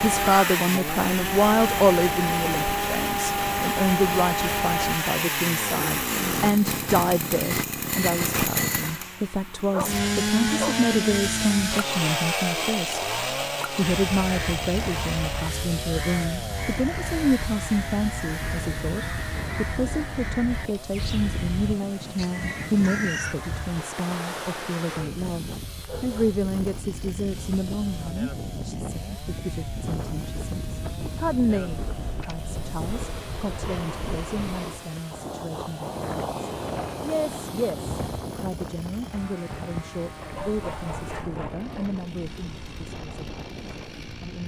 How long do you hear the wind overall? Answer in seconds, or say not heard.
26 s.